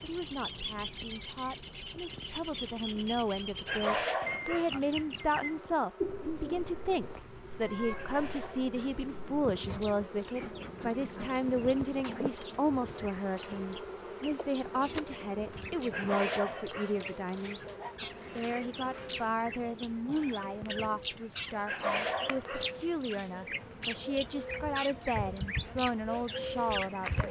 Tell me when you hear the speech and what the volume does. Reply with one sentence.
You can hear the speech from 0.0 to 27.2 s, at a steady volume.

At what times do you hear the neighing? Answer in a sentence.
You can't hear the neighing here.